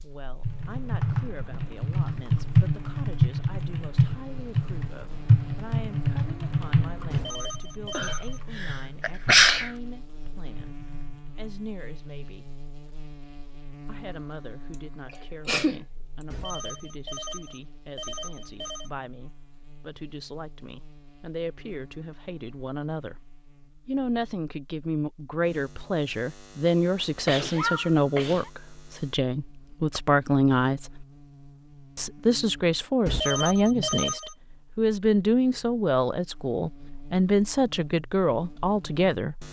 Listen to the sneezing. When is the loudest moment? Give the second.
9 s.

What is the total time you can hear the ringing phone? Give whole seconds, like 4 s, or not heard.
5 s.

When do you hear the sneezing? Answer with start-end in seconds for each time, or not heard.
8.0-9.7, 14.7-16.2, 27.1-28.5.